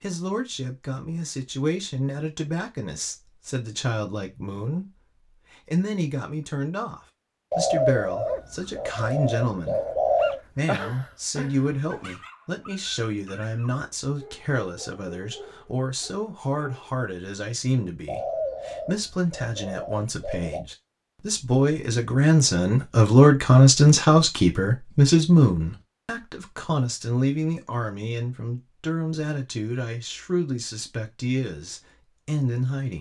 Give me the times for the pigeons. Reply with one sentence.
You can hear the pigeons from 7.5 to 10.4 s and from 18.1 to 20.6 s.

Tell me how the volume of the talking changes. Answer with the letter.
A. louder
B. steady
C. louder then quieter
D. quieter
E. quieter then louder
C.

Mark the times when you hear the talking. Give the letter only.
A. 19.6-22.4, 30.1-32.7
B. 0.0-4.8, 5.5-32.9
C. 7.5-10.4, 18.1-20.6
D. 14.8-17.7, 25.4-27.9
B.